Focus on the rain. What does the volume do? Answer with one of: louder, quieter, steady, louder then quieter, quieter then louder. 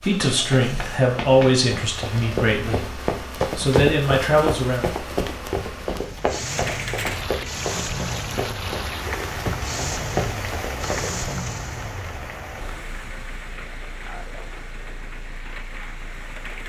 quieter.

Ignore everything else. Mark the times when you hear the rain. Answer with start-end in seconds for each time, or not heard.
6.3-16.6.